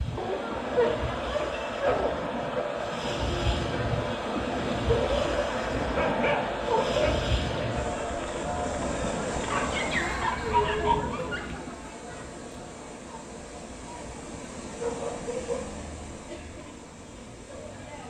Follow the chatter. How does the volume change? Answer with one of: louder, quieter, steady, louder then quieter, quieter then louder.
quieter.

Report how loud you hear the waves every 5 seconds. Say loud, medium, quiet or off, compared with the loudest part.
loud, loud, medium, medium.